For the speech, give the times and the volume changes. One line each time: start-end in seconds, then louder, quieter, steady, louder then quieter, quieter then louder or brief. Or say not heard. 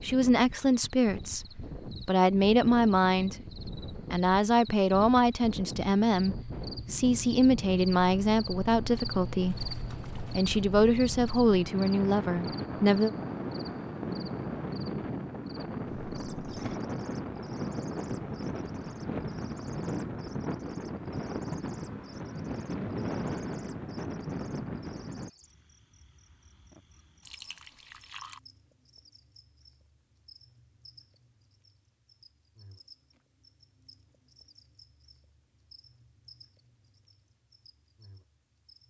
0.0-13.1 steady.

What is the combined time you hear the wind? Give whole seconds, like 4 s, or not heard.
25 s.